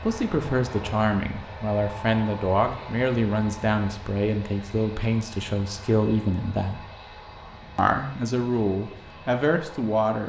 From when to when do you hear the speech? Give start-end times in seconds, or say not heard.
0.0-6.8, 7.8-10.2.